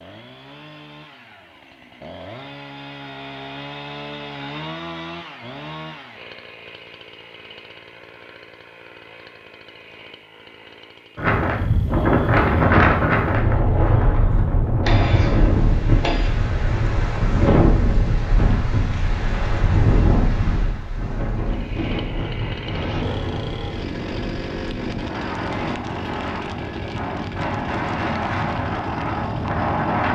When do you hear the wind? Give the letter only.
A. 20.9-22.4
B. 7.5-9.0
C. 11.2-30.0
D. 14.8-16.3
C.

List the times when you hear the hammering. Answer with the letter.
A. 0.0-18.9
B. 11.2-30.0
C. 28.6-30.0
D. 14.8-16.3
D.